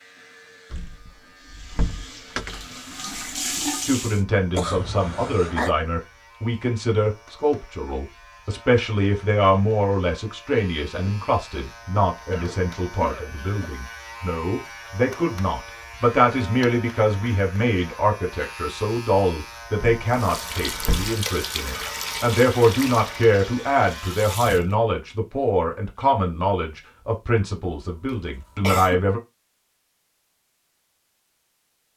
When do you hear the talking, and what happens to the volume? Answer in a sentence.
The talking can be heard from 3.8 to 29.2 s, at a steady volume.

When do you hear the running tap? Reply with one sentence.
You can hear the running tap from 1.4 to 4.2 s and from 20.1 to 24.8 s.